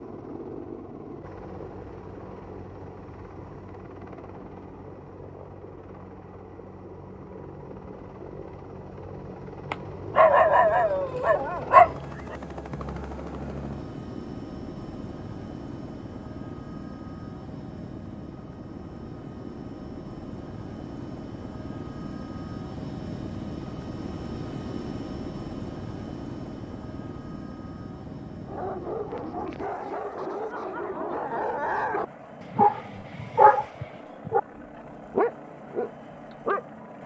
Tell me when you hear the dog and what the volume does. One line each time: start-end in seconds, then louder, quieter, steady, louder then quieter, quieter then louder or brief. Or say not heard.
9.7-12.3 brief
28.4-36.6 louder then quieter.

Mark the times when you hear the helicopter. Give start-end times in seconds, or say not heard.
0.0-37.0.